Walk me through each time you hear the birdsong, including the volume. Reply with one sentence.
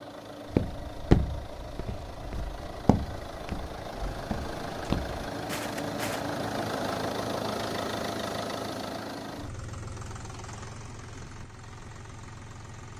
The birdsong can't be heard in this clip.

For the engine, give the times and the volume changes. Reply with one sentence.
The engine can be heard from 0.0 to 12.9 s, getting louder then quieter.